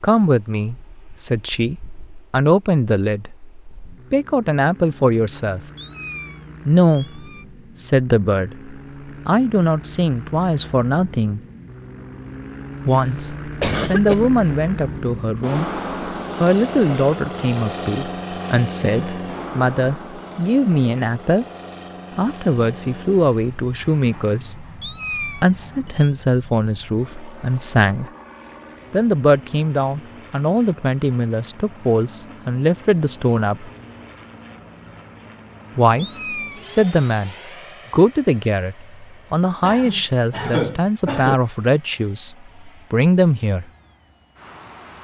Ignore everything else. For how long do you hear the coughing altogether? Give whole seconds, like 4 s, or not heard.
3 s.